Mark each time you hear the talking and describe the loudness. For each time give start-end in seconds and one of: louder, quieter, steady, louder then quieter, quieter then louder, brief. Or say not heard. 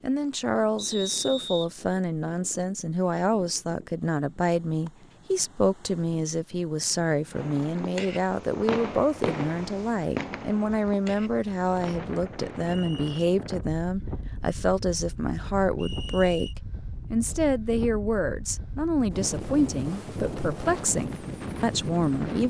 0.0-16.5 steady
17.1-22.4 steady.